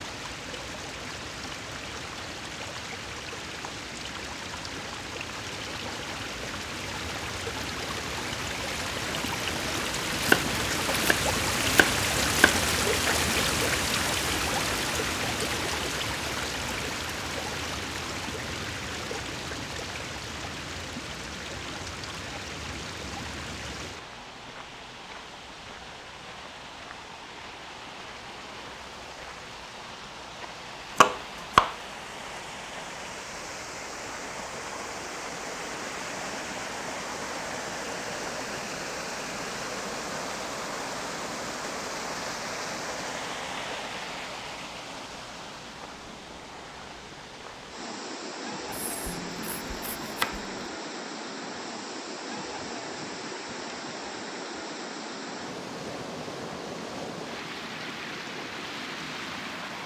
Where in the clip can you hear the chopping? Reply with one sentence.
You can hear the chopping from 10.2 to 12.6 s, from 30.9 to 31.8 s and from 48.6 to 50.6 s.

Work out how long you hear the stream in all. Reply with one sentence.
The stream can be heard for 60 seconds in total.